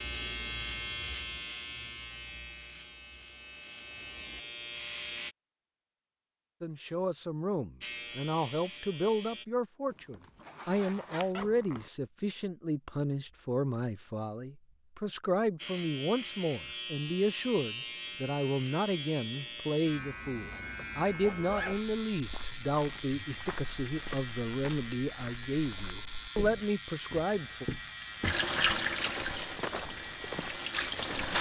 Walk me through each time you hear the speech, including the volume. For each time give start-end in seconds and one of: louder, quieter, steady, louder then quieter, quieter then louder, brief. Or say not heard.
6.6-27.6 steady.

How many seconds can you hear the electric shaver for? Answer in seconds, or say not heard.
23 s.